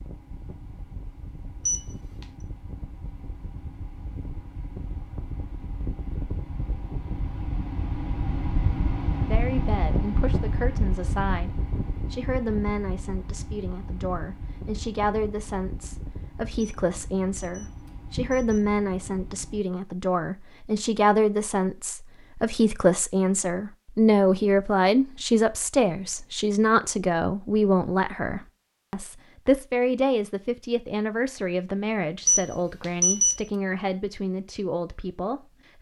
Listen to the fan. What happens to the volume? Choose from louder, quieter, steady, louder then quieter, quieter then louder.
louder then quieter.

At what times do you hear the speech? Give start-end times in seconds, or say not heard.
9.2-35.7.